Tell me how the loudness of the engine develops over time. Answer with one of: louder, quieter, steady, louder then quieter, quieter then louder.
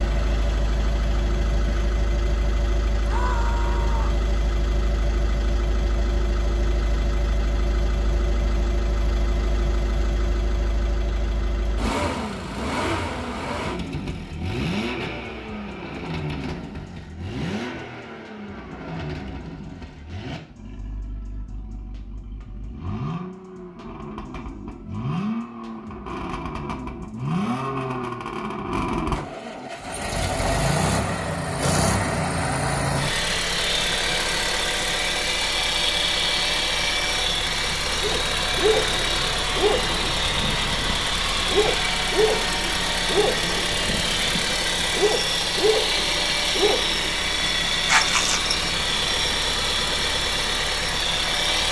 louder.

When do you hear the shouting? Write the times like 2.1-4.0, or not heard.
3.0-4.2.